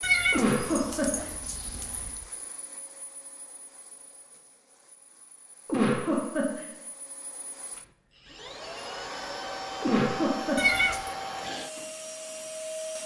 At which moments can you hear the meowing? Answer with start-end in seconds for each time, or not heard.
0.0-2.2, 10.6-11.2.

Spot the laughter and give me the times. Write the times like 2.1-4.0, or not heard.
0.3-1.2, 5.7-6.7, 9.8-10.8.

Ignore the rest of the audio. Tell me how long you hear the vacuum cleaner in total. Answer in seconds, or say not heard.
13 s.